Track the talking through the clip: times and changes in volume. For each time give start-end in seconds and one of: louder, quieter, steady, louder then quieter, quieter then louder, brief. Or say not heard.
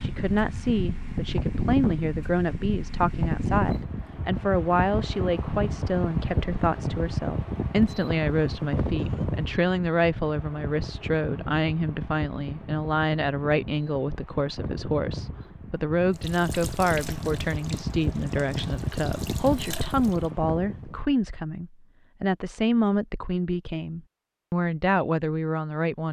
0.0-26.0 steady.